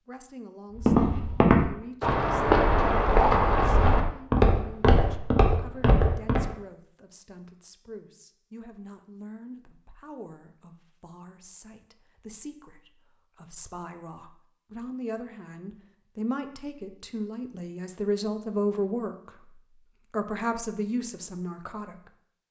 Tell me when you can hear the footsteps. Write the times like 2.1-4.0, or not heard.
0.8-6.5.